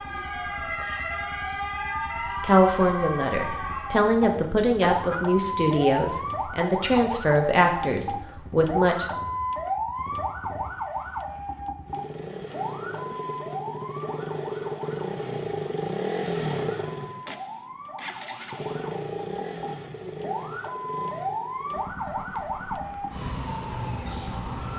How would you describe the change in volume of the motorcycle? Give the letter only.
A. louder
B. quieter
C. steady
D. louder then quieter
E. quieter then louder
D.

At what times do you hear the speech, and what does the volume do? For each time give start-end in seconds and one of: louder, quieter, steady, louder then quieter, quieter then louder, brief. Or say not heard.
2.4-9.1 steady.